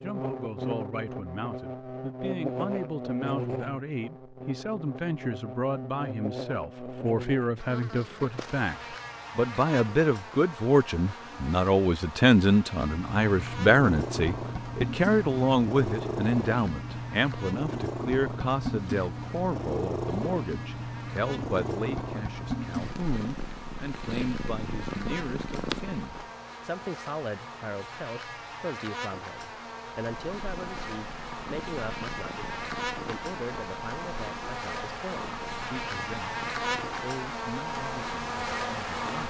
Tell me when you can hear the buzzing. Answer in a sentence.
The buzzing can be heard from 0.0 to 39.2 s.